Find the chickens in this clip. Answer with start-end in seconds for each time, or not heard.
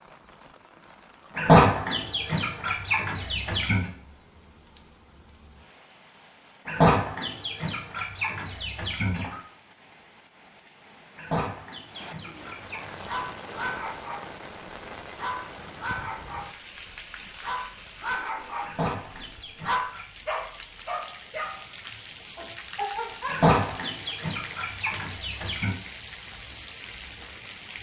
1.4-3.9, 6.7-9.3, 11.2-13.2, 18.6-20.1, 23.2-25.8.